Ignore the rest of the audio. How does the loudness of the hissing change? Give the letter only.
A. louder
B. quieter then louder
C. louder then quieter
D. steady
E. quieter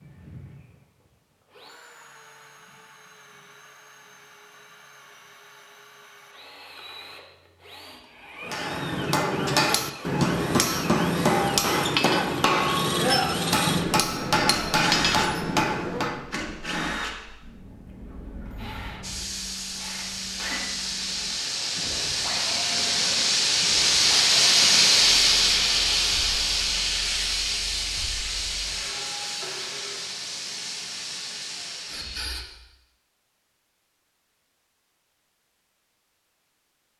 C.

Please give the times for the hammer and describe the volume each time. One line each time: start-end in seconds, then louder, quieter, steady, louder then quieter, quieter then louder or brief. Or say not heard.
8.4-16.3 steady.